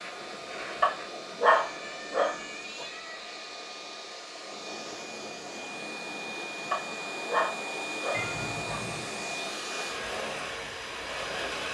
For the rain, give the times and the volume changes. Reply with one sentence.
The rain can't be heard in this clip.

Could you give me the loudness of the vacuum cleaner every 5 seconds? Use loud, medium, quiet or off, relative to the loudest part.
medium, loud, loud.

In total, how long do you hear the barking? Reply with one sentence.
The barking can be heard for 4 seconds in total.